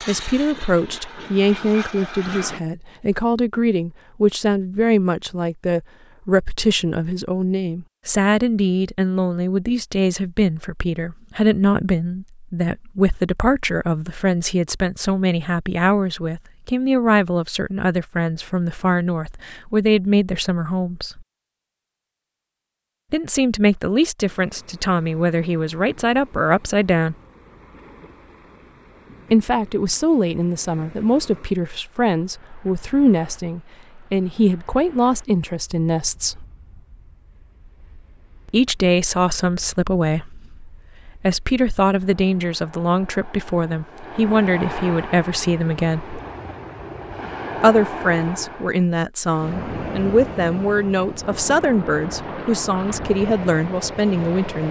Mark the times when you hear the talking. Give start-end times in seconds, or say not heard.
0.1-21.2, 23.1-27.1, 29.3-36.5, 38.5-46.1, 47.6-54.6.